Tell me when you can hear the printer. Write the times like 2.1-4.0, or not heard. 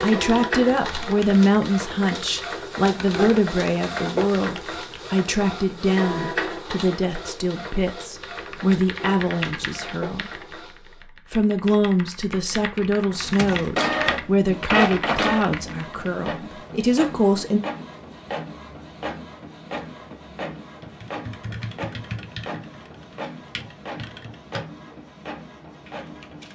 0.0-11.1, 13.0-26.5.